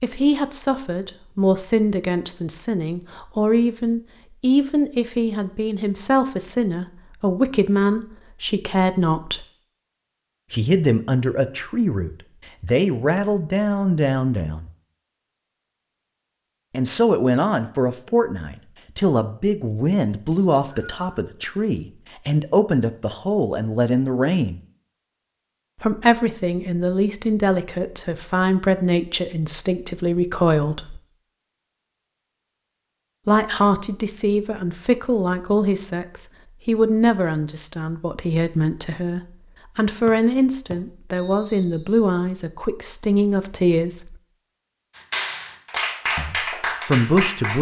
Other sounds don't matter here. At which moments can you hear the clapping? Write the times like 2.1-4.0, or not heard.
45.0-47.5.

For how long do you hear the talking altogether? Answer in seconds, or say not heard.
39 s.